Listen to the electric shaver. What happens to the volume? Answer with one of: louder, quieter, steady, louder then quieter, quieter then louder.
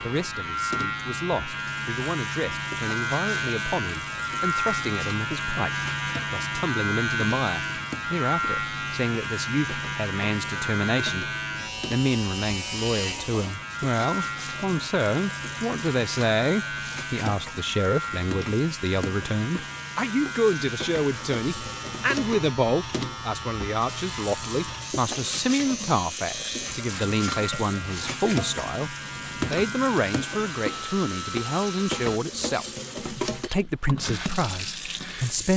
quieter.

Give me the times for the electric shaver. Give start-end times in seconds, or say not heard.
0.0-32.2.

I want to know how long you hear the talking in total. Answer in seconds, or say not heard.
35 s.